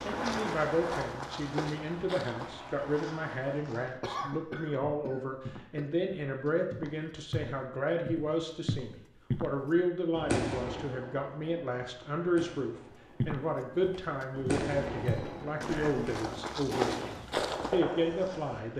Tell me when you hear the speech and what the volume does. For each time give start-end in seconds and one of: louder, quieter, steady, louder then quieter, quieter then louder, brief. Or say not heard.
0.0-18.7 steady.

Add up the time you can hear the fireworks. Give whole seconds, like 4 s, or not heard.
12 s.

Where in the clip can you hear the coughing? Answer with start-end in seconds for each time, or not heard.
4.0-6.0, 15.1-16.6.